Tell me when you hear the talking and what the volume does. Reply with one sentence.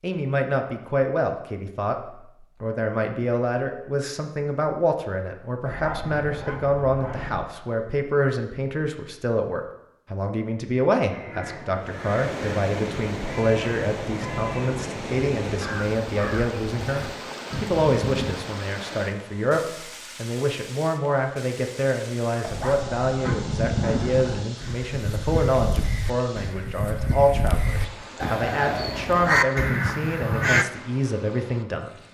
The talking can be heard from 0.0 to 31.9 s, at a steady volume.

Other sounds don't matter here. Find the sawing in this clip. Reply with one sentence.
The sawing can't be heard in this clip.